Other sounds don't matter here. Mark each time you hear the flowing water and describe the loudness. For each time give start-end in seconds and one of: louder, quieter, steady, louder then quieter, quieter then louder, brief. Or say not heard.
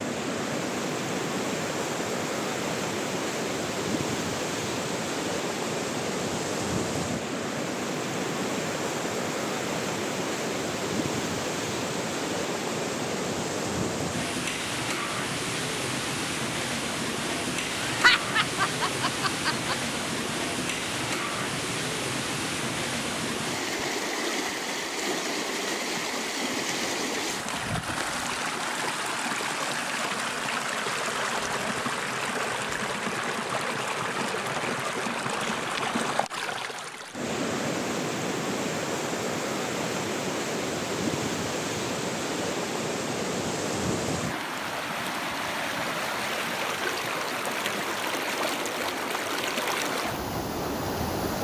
0.0-51.3 steady.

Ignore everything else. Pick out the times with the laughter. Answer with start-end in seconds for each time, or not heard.
17.9-19.9.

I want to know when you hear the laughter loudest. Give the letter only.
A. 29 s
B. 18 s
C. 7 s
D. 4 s
B.